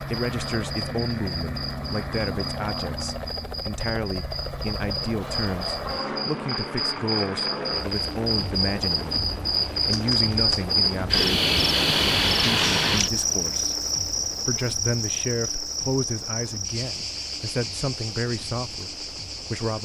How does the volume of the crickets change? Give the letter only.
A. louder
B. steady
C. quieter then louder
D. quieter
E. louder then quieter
E.